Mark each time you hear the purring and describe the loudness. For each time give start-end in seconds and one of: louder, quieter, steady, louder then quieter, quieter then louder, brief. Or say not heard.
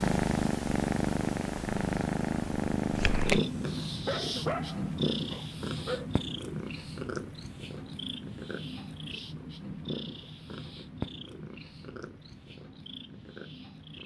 0.0-14.0 quieter.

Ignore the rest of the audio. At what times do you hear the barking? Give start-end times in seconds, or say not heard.
4.0-6.0.